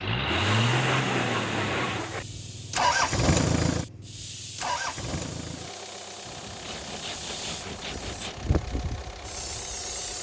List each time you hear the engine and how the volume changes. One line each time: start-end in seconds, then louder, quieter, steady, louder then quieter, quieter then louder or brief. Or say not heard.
0.0-10.1 quieter.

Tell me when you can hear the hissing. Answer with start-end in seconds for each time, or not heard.
0.2-10.1.